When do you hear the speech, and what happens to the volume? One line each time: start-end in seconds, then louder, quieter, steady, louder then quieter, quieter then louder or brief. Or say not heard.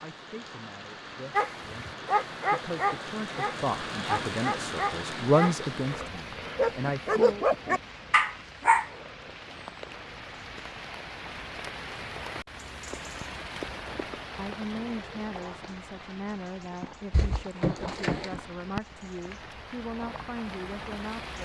0.0-7.5 louder then quieter
14.3-21.3 steady.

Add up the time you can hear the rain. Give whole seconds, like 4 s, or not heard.
21 s.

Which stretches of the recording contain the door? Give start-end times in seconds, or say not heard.
17.1-18.4.